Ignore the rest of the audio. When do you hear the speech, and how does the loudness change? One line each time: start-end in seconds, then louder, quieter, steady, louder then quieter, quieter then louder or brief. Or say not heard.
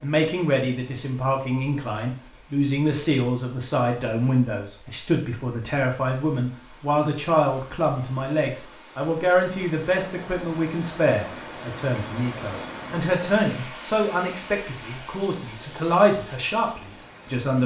0.0-17.6 steady.